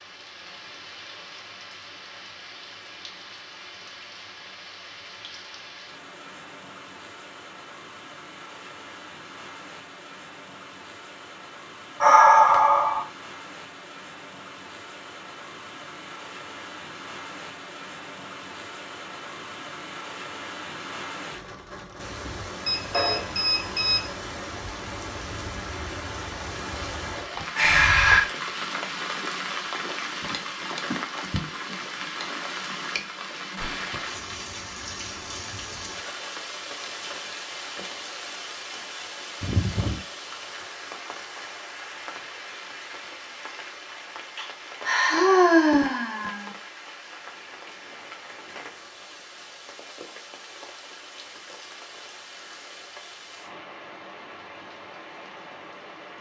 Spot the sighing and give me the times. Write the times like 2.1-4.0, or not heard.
12.0-13.1, 27.6-28.2, 44.4-46.5.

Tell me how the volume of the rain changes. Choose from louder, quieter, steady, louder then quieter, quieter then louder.
louder then quieter.